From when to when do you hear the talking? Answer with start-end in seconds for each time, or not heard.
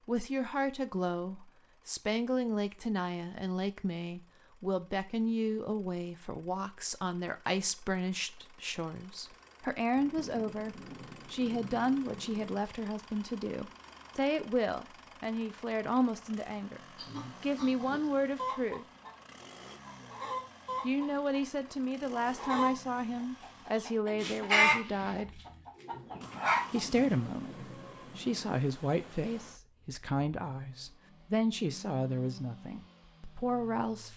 0.1-16.8, 17.4-18.9, 20.8-25.4, 26.7-34.1.